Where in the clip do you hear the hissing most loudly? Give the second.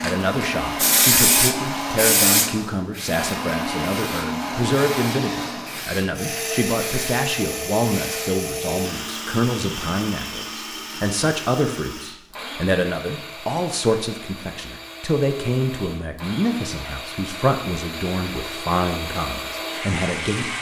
1 s.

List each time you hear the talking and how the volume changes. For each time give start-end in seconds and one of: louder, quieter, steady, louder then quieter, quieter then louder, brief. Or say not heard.
0.0-20.5 steady.